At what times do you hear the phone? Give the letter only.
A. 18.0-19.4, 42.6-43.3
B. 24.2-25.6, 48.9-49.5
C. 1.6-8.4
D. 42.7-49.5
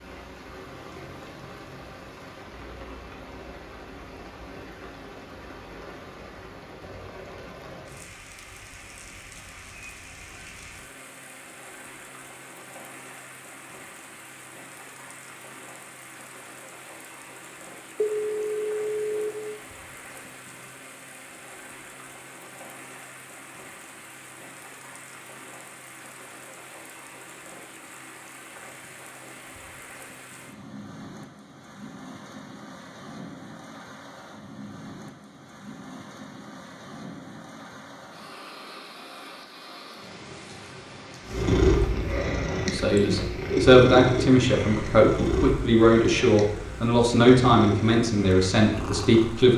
A.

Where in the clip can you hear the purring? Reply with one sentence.
You can hear the purring from 41.2 to 49.5 s.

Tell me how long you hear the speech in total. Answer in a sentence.
The speech can be heard for 7 seconds in total.